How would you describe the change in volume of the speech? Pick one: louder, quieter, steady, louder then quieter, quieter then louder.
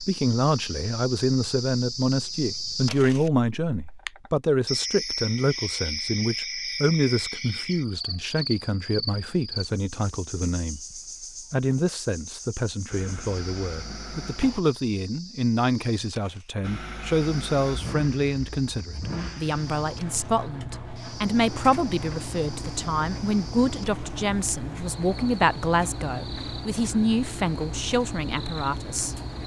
steady.